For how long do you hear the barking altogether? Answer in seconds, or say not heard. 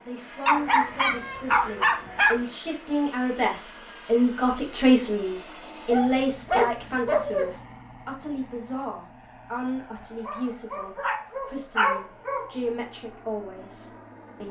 6 s.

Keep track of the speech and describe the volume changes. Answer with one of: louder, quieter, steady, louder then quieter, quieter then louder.
louder then quieter.